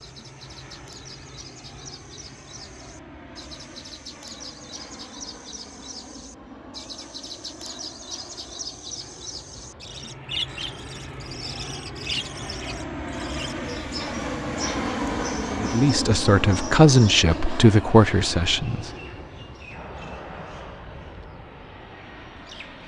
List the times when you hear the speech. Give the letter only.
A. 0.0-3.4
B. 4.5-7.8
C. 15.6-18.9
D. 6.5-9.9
C.